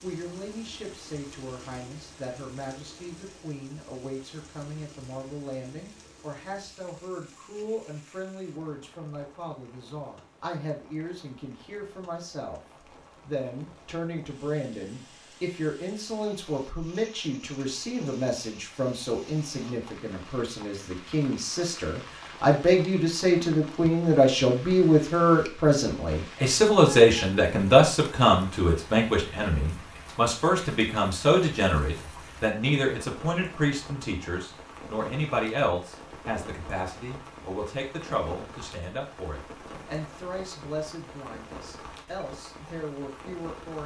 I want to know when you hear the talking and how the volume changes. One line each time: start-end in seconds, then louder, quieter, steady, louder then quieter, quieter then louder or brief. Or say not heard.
0.0-12.6 steady
13.2-43.8 louder then quieter.